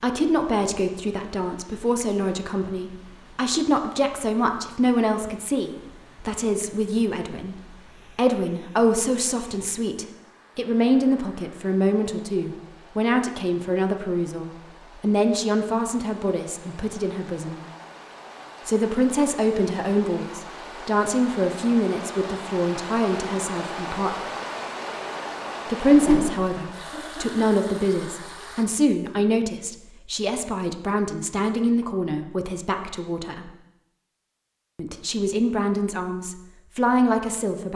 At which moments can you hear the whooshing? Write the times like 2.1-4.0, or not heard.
25.9-26.6.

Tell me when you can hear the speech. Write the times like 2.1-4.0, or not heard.
0.0-17.6, 18.6-24.1, 25.6-33.5, 34.8-37.7.